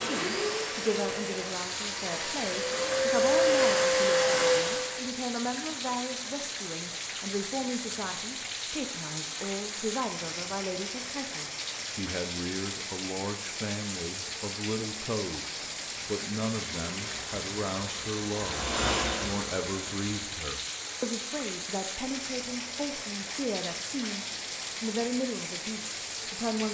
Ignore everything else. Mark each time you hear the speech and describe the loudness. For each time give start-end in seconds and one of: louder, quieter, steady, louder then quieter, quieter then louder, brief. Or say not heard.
0.0-26.6 steady.